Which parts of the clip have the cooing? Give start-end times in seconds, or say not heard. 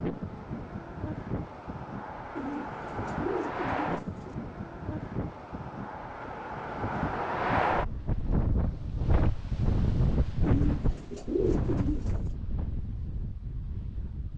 2.4-4.3, 10.4-12.3.